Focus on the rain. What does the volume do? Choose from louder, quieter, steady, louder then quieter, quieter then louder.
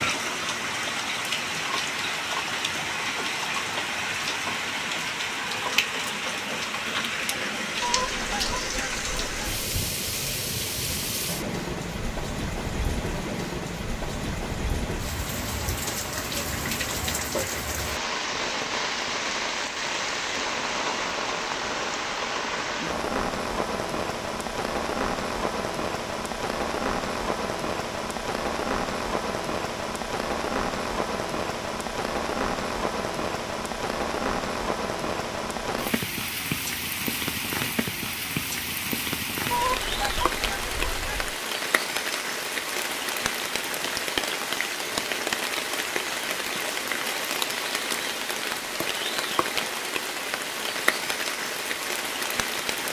steady.